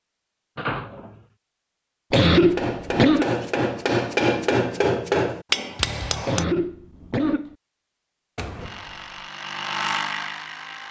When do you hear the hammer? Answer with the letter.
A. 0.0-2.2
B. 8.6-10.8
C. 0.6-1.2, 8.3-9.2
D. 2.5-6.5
D.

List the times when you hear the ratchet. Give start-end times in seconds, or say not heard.
not heard.